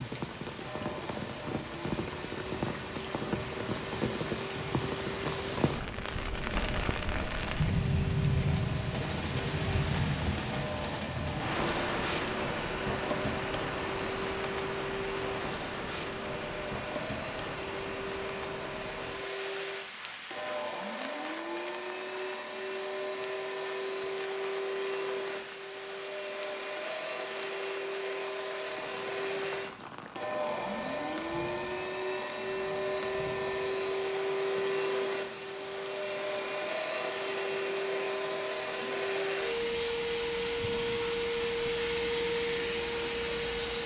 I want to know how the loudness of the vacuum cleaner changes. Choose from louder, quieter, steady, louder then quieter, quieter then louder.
louder.